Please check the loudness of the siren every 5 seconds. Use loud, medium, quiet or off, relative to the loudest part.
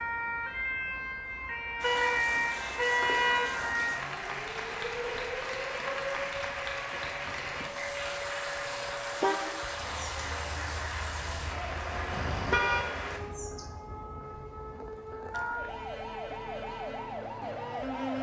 loud, medium, medium, loud.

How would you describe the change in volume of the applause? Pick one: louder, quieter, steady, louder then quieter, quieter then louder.
steady.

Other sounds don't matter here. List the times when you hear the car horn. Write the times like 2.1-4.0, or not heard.
1.8-3.7, 8.7-9.6, 12.1-12.8.